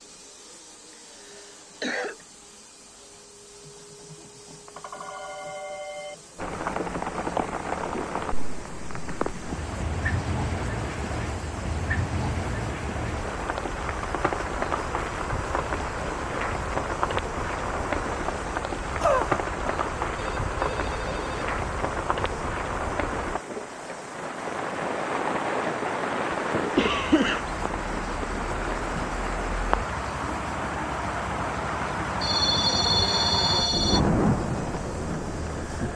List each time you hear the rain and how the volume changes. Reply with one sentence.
The rain can be heard from 6.3 to 35.9 s, at a steady volume.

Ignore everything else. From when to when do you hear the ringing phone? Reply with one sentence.
The ringing phone can be heard from 4.2 to 6.2 s, from 20.1 to 21.5 s and from 32.2 to 34.0 s.